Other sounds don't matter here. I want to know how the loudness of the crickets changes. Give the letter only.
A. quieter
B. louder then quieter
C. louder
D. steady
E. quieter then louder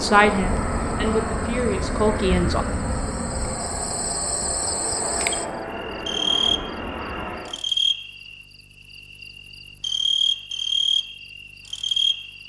C.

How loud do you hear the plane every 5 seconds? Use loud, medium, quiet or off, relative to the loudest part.
loud, loud, off.